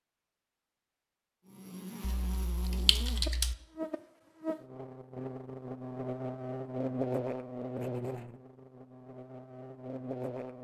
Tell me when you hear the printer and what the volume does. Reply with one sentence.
The printer can't be heard in this clip.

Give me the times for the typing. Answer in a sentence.
You can hear the typing from 2.0 to 3.5 s.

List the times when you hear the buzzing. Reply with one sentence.
The buzzing can be heard from 1.4 to 10.5 s.